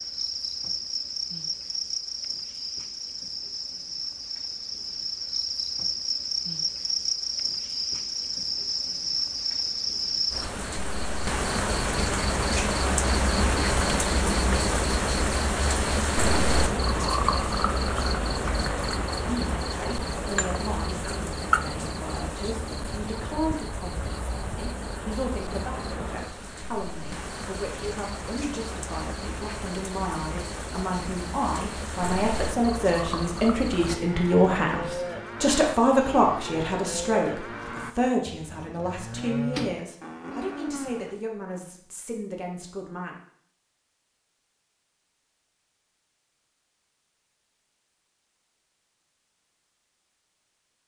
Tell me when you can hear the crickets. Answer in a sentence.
The crickets can be heard from 0.0 to 34.0 s.